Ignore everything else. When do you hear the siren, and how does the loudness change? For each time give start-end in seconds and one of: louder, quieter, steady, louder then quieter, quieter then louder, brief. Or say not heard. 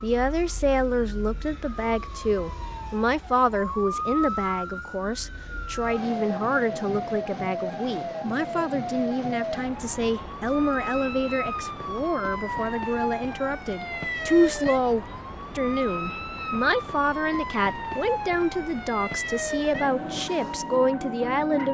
0.0-21.7 steady.